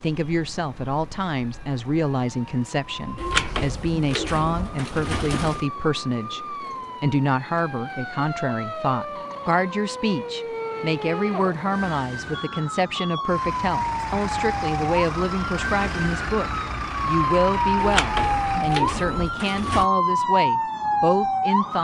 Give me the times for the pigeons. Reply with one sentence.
The pigeons can be heard from 3.1 to 5.7 s and from 17.8 to 19.9 s.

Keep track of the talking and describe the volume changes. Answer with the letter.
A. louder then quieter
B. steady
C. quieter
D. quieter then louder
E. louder
B.